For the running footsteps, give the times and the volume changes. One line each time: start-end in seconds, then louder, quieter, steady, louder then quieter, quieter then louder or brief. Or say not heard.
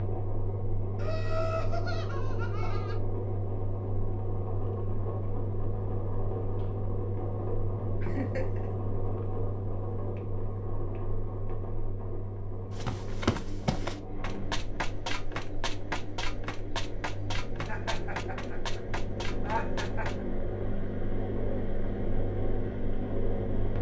12.7-20.2 quieter.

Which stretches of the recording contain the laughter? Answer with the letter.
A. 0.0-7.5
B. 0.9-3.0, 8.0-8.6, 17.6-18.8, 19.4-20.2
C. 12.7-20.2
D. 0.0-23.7
B.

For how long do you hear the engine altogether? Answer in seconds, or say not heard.
24 s.